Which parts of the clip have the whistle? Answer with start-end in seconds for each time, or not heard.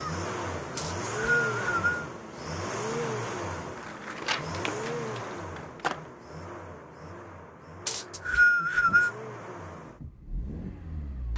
0.8-2.0, 7.8-9.1.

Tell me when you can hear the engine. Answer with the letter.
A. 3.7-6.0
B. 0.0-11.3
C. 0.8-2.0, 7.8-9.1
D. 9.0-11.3
B.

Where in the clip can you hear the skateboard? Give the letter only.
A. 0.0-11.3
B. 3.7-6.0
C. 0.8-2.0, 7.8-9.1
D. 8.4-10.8
B.